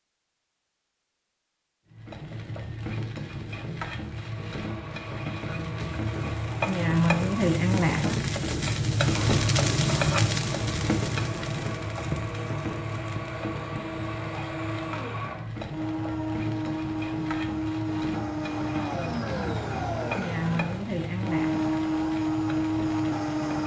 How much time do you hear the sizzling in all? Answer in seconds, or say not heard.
22 s.